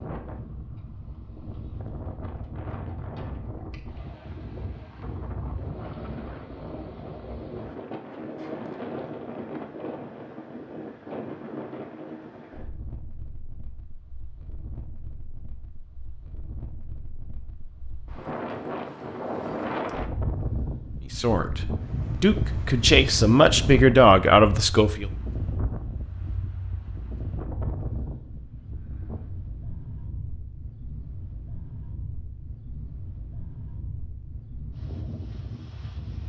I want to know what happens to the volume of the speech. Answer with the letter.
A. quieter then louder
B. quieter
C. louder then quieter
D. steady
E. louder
E.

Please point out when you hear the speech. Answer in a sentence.
The speech can be heard from 21.0 to 25.1 s.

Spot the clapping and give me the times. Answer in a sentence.
The clapping can't be heard in this clip.